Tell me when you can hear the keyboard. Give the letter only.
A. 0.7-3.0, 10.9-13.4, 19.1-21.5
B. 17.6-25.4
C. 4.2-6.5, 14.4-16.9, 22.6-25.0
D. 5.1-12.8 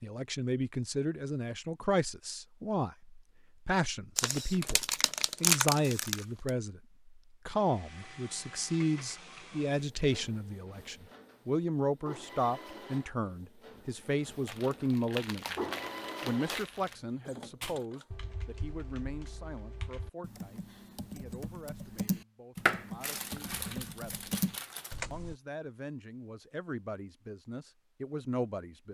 B.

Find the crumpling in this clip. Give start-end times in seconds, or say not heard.
4.2-6.5, 14.4-16.9, 22.6-25.0.